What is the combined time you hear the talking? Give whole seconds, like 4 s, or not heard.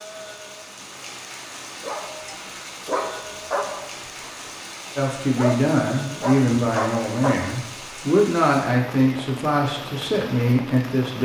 6 s.